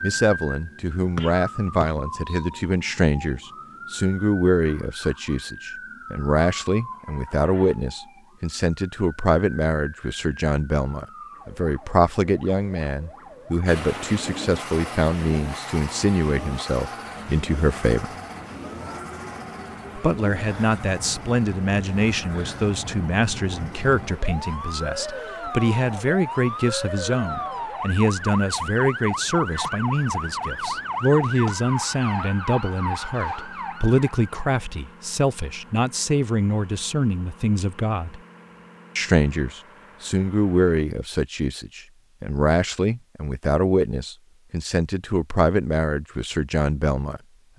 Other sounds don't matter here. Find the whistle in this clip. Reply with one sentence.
The whistle can be heard from 1.1 to 2.5 s.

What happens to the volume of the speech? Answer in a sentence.
The loudness of the speech stays about the same.